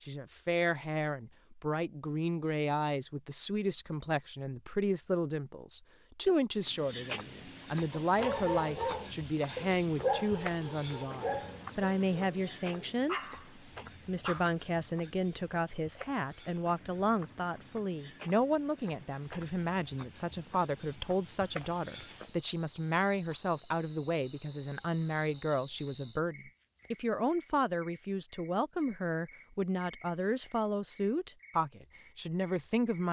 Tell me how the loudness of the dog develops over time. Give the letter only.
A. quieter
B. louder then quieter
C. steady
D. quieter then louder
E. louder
D.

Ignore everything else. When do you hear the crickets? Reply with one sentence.
You can hear the crickets from 6.5 to 33.0 s.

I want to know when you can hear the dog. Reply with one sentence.
You can hear the dog from 7.9 to 14.4 s.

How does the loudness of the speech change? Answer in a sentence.
The loudness of the speech stays about the same.